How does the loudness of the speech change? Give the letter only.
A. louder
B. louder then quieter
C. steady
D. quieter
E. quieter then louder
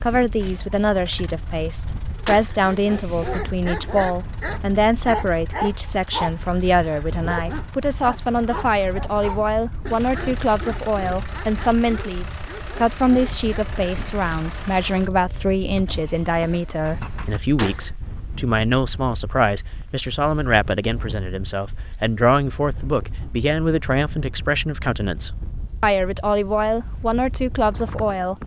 C.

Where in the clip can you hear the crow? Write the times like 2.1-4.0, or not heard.
not heard.